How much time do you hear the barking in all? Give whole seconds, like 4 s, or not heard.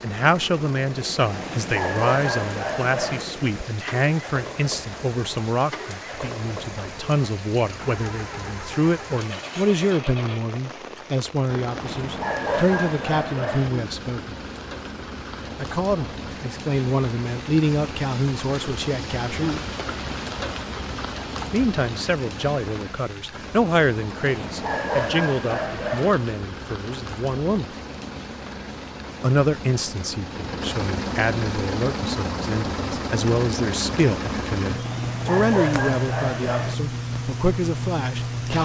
8 s.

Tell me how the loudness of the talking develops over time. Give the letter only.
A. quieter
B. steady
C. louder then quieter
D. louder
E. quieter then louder
B.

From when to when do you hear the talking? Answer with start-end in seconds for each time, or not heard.
0.0-14.3, 15.6-19.5, 21.5-27.7, 29.2-38.5.